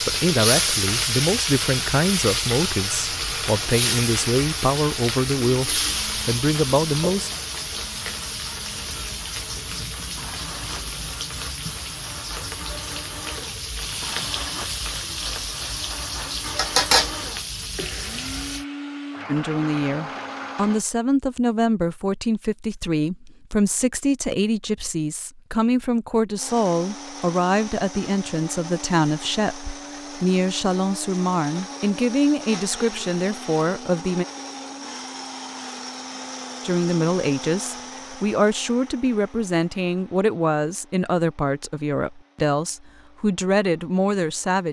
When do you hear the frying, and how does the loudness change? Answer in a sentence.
You can hear the frying from 0.0 to 18.6 s, getting quieter then louder.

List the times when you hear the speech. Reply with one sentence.
You can hear the speech from 0.0 to 7.3 s, from 19.2 to 34.2 s and from 36.6 to 44.6 s.